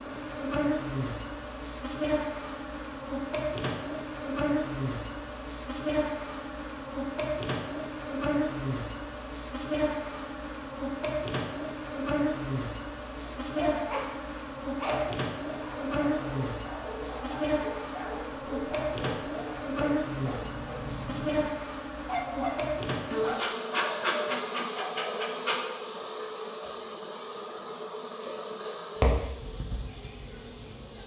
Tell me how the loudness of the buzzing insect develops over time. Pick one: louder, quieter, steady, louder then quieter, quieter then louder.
steady.